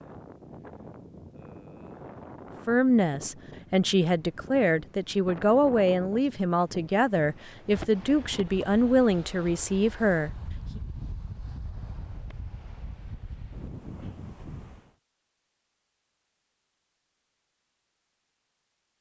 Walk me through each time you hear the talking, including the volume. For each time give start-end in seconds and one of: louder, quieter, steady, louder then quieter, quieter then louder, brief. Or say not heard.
2.6-10.8 steady.